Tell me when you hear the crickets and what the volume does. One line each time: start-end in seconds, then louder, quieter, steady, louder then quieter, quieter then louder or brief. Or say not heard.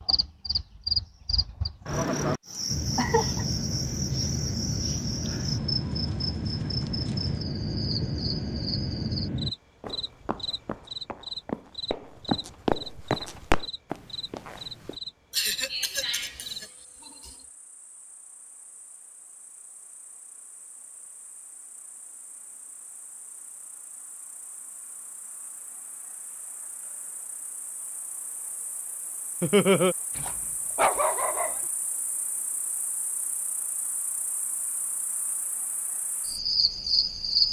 0.0-37.4 quieter then louder.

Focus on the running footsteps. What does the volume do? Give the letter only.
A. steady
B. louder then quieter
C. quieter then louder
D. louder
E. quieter
B.